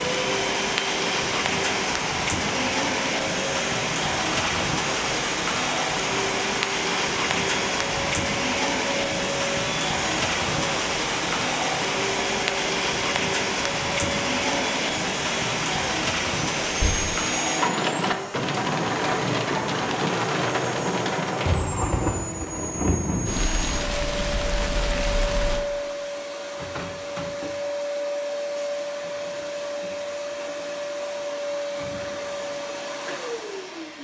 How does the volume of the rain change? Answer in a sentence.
The volume of the rain stays about the same.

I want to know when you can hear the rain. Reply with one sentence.
You can hear the rain from 0.0 to 25.6 s.